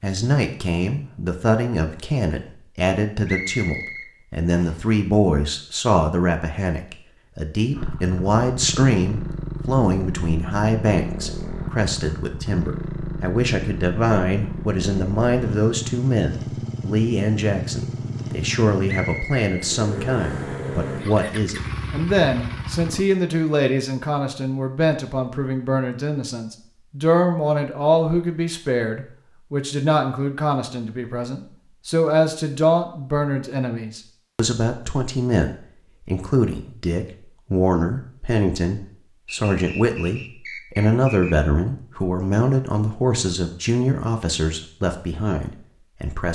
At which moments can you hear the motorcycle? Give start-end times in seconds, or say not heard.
7.8-23.1.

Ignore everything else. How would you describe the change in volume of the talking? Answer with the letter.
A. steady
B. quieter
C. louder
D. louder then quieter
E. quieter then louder
A.